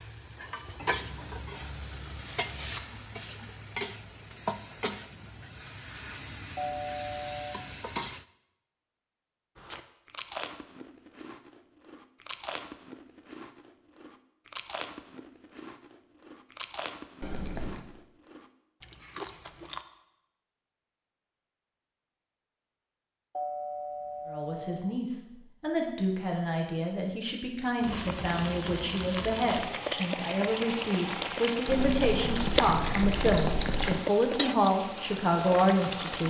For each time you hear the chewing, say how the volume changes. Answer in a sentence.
The chewing can be heard from 9.6 to 19.9 s, at a steady volume.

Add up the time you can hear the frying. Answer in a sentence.
The frying can be heard for 17 seconds in total.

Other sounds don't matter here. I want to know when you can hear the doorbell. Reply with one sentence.
The doorbell can be heard from 6.5 to 7.6 s and from 23.4 to 24.9 s.